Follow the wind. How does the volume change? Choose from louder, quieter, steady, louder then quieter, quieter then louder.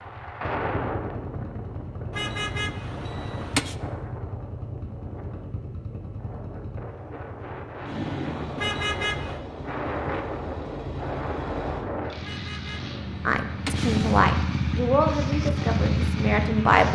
quieter then louder.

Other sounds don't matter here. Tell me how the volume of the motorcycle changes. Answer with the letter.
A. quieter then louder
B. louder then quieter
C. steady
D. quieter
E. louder
E.